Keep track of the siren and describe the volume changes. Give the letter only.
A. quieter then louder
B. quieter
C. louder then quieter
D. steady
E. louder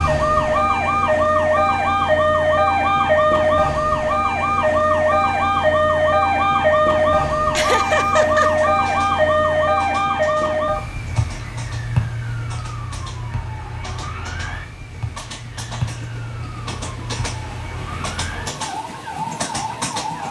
B.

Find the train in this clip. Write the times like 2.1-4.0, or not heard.
8.4-20.2.